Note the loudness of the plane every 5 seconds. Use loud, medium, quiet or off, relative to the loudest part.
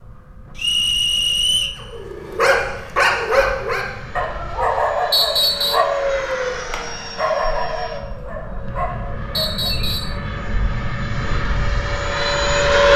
quiet, medium, loud.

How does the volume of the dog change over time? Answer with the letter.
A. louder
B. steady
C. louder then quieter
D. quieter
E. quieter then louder
D.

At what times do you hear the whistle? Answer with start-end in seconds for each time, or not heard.
0.6-1.8, 5.1-5.8, 9.3-10.2.